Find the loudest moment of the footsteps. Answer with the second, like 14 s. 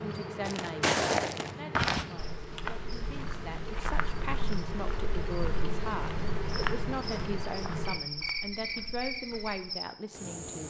1 s.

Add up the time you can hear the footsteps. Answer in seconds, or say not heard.
9 s.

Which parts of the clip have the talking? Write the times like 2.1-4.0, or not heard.
0.1-10.6.